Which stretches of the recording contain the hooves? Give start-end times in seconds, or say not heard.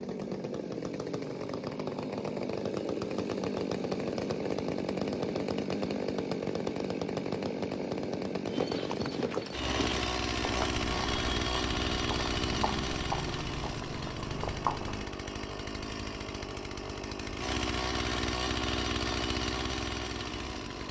8.4-15.1.